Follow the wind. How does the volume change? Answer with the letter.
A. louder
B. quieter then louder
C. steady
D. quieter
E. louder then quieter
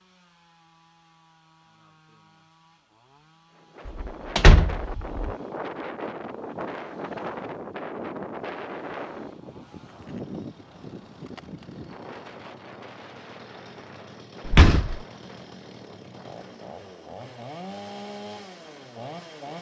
D.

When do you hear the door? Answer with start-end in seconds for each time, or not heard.
3.9-5.2, 14.4-15.0.